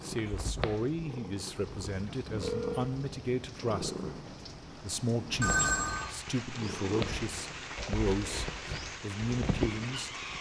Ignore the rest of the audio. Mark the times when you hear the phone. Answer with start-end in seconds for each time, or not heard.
2.3-2.9, 5.4-6.1.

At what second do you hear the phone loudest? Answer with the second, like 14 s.
6 s.